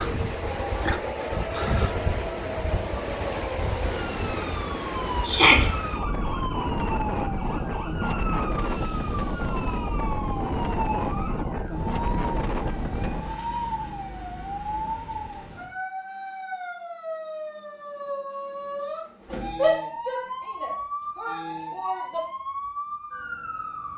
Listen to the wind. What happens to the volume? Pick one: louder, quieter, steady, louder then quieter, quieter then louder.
steady.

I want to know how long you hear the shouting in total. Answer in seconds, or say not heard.
3 s.